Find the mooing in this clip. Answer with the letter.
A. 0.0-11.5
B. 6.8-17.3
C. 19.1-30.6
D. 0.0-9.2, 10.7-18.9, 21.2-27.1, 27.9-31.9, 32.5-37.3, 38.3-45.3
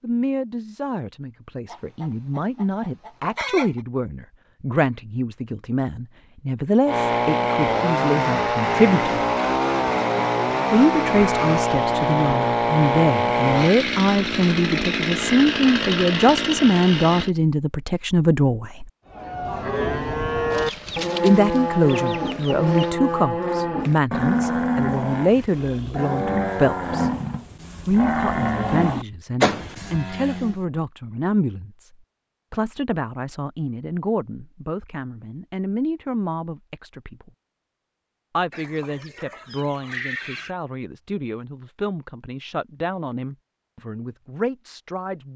C.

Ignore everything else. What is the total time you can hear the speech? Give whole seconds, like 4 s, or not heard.
39 s.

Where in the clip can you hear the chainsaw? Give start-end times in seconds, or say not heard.
6.8-17.3.